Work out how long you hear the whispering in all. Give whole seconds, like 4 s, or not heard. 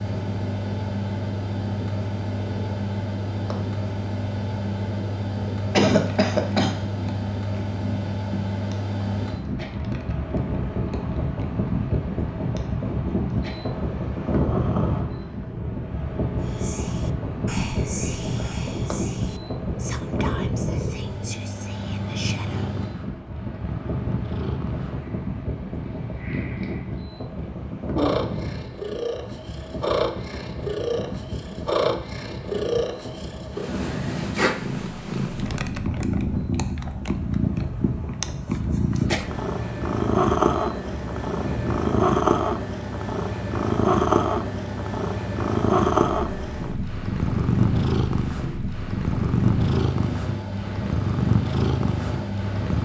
6 s.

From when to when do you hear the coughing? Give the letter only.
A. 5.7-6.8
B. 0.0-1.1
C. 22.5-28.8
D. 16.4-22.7
A.